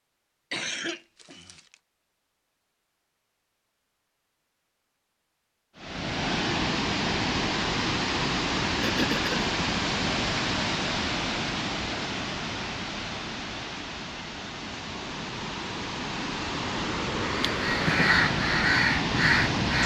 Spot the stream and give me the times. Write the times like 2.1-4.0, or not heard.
5.8-19.8.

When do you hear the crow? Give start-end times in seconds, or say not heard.
17.2-19.8.